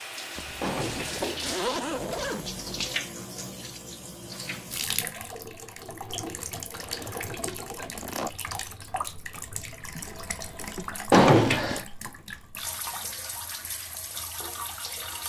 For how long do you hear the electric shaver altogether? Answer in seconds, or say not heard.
not heard.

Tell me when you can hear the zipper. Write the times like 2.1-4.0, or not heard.
0.3-3.0, 6.7-8.3, 10.4-11.0.